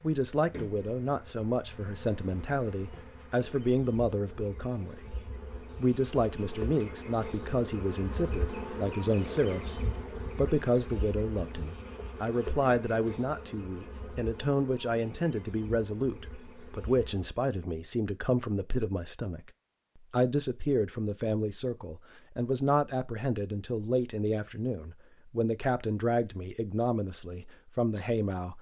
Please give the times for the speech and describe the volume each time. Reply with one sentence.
You can hear the speech from 0.0 to 19.5 s, at a steady volume; and from 20.1 to 28.5 s, at a steady volume.